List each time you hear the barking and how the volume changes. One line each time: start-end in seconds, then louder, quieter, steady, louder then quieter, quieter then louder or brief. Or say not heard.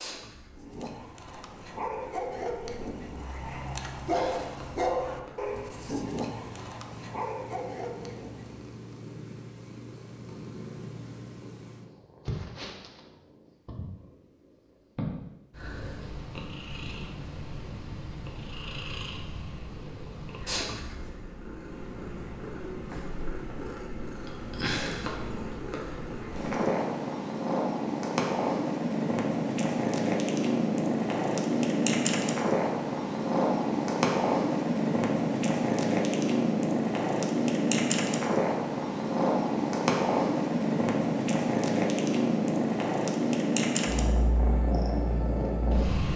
0.6-8.7 louder then quieter.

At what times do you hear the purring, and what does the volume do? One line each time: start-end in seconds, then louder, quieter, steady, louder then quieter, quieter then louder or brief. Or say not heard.
0.0-46.1 louder.